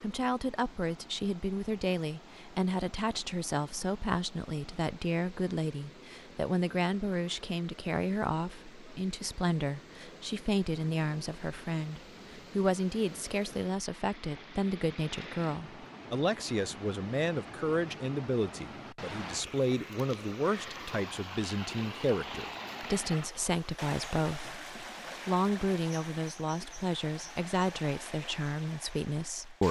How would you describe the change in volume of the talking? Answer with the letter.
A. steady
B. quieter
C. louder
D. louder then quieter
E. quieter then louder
A.